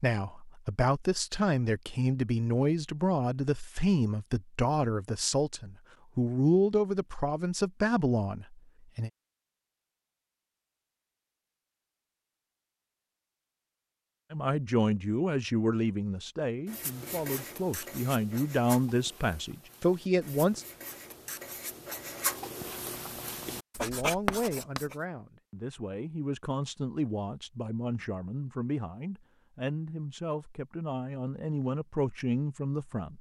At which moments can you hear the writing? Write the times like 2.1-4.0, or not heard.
16.6-24.9.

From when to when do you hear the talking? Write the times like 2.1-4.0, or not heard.
0.0-9.1, 14.3-20.6, 23.8-33.1.